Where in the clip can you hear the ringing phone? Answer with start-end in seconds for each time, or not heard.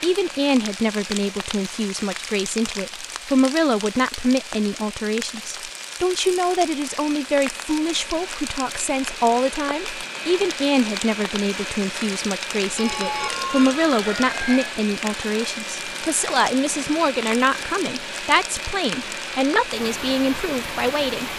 12.8-14.8.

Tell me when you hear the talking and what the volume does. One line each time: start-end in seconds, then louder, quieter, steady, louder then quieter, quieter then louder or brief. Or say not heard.
0.0-21.3 steady.